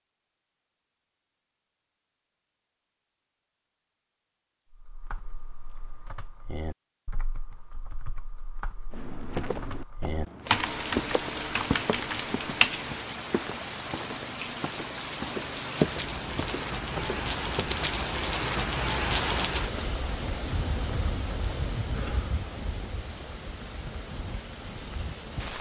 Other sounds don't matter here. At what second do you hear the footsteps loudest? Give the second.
16 s.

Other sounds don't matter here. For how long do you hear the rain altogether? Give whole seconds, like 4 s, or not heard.
15 s.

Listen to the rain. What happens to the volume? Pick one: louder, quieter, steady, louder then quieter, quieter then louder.
louder then quieter.